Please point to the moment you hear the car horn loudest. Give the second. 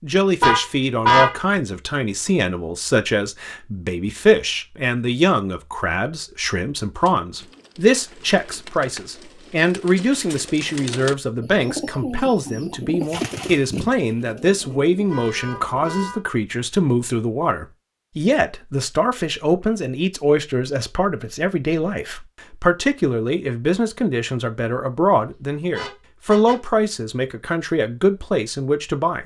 1 s.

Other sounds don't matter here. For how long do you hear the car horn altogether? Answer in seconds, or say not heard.
3 s.